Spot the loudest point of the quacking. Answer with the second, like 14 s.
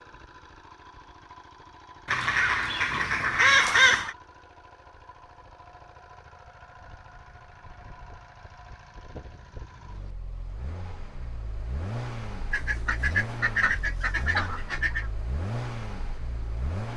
4 s.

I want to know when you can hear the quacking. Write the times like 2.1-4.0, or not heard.
2.0-4.2, 12.5-15.1.